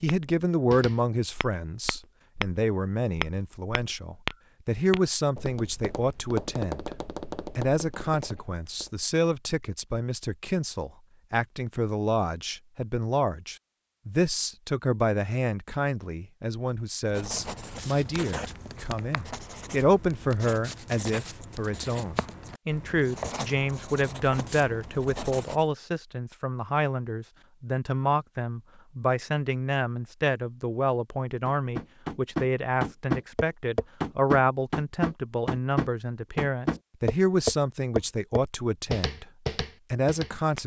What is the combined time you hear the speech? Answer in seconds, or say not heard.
39 s.